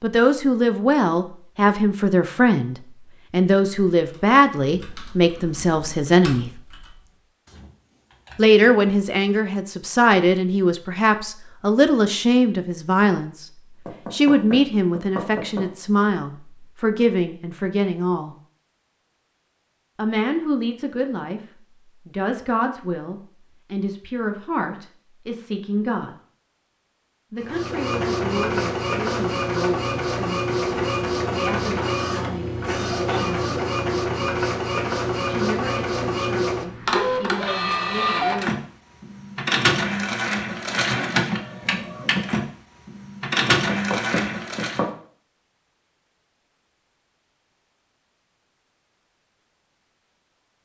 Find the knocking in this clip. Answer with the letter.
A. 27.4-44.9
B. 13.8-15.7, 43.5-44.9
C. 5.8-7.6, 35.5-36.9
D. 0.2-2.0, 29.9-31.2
B.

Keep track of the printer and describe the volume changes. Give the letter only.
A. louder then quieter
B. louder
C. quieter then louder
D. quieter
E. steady
E.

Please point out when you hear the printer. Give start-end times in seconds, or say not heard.
27.4-44.9.